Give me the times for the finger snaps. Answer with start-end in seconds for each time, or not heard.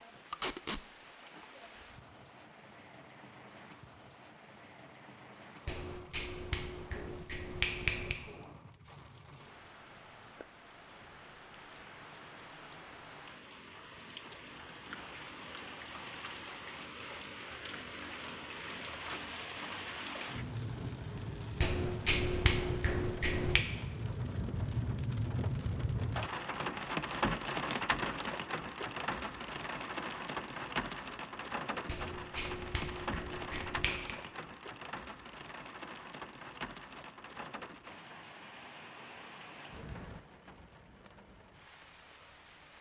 5.7-8.2, 21.6-23.6, 31.9-34.1.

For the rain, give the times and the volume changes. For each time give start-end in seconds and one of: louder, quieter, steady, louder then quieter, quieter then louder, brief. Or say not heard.
0.0-42.7 louder then quieter.